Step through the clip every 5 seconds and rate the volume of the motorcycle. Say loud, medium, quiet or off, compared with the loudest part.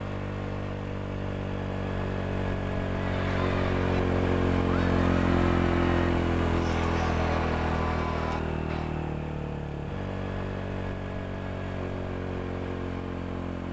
loud, loud, medium.